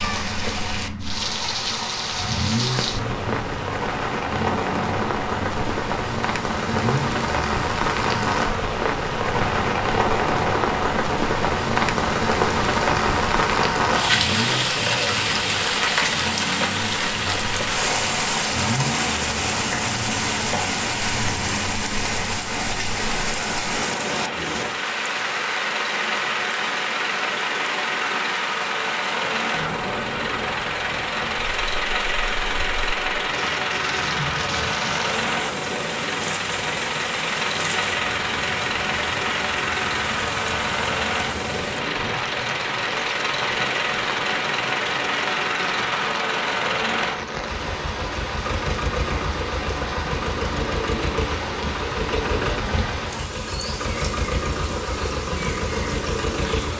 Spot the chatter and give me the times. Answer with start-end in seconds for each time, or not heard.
not heard.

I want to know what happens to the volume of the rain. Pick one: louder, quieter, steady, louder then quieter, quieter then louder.
quieter.